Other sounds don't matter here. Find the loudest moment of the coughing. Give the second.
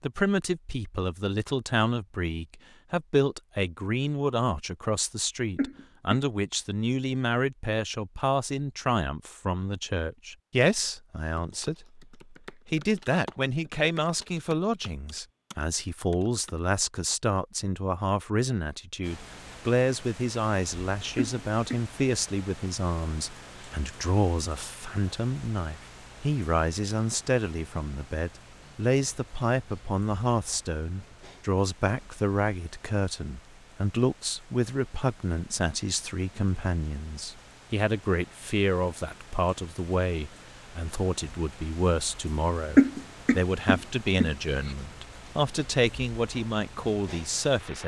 43 s.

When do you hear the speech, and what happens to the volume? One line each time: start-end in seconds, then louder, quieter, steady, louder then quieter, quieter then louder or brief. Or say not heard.
0.0-47.8 steady.